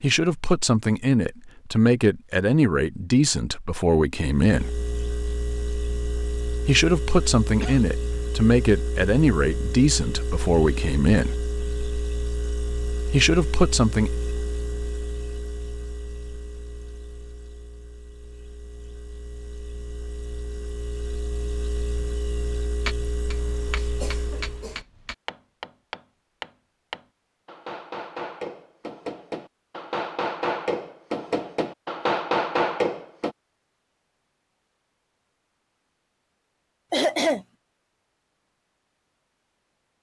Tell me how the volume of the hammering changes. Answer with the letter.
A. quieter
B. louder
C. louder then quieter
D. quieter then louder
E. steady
B.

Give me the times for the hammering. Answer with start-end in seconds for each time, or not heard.
22.9-33.4.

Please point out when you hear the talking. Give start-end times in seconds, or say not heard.
0.0-4.7, 6.7-11.3, 13.1-14.1.